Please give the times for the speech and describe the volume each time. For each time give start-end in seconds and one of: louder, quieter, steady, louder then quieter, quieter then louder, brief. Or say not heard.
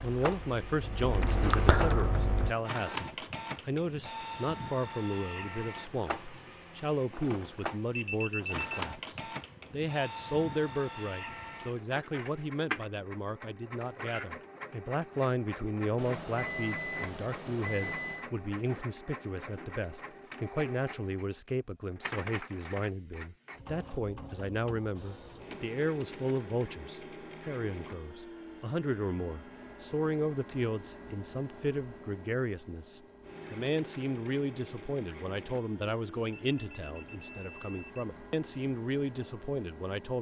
0.0-40.1 steady.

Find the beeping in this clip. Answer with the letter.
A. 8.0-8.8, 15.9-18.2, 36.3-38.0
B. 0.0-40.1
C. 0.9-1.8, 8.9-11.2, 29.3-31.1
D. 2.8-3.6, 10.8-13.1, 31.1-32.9
A.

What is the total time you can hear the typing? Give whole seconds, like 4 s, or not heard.
2 s.